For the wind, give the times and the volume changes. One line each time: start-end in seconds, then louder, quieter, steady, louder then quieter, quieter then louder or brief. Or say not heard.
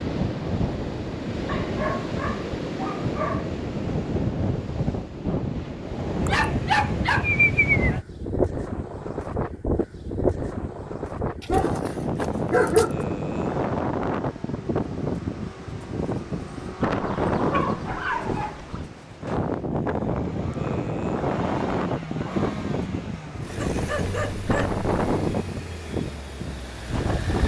0.0-27.4 steady.